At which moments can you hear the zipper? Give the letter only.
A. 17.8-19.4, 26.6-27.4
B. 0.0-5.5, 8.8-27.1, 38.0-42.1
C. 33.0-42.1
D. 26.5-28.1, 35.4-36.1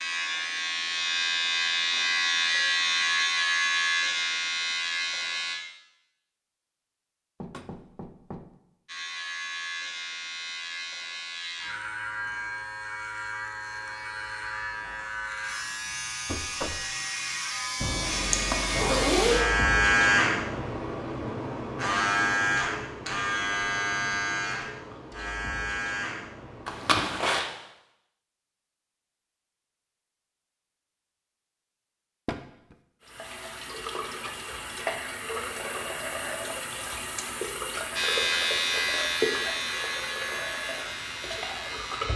A.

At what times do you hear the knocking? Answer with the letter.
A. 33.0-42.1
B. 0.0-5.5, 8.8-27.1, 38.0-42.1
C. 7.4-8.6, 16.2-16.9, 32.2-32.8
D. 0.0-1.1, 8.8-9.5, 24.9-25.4
C.